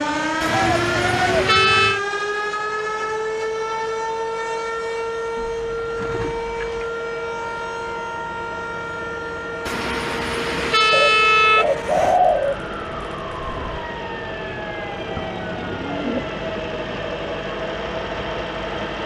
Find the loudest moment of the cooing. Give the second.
12 s.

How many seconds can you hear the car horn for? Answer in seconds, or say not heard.
4 s.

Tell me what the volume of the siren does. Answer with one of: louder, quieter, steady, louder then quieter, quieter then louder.
quieter.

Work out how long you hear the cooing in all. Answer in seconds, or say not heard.
7 s.